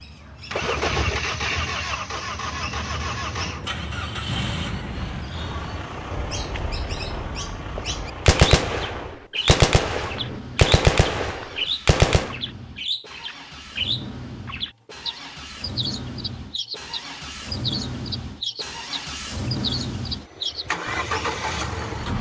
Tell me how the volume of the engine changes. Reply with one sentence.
The loudness of the engine goes down, then up.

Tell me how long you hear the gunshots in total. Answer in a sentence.
The gunshots can be heard for 4 seconds in total.